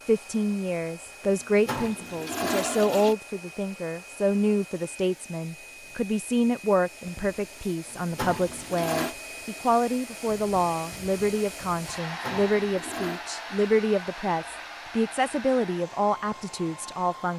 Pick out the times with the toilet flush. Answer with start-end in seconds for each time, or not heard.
1.4-3.1, 7.9-9.2, 12.0-13.2.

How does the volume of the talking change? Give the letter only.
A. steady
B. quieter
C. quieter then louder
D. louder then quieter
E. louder
A.